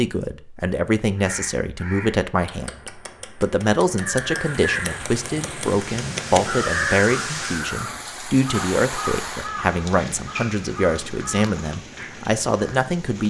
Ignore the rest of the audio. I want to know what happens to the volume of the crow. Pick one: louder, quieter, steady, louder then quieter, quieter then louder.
louder then quieter.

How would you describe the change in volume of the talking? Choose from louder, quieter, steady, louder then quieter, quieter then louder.
steady.